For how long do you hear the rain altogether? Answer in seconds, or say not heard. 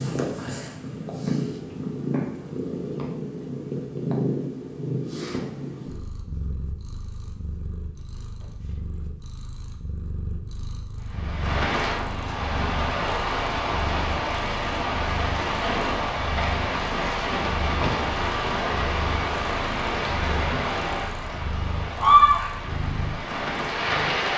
13 s.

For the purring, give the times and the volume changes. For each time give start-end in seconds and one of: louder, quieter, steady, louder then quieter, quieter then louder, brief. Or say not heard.
0.0-24.3 quieter.